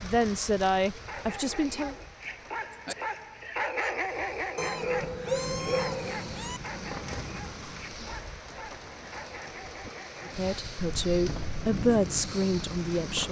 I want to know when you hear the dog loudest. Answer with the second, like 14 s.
4 s.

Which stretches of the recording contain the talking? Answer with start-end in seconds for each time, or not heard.
0.0-1.9, 10.2-13.2.